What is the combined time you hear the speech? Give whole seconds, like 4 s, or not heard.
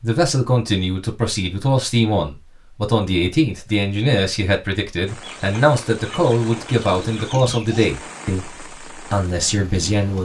10 s.